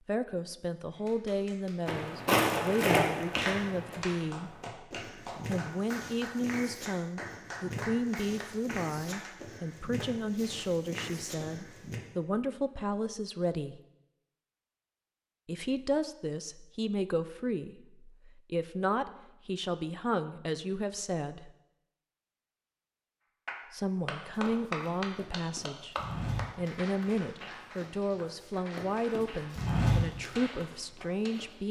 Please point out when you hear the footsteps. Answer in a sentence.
The footsteps can be heard from 1.9 to 12.0 s and from 24.4 to 31.4 s.